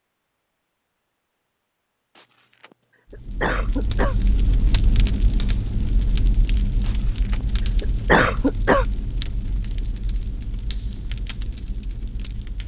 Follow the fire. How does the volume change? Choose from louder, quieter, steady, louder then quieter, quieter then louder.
quieter.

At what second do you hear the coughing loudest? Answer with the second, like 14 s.
8 s.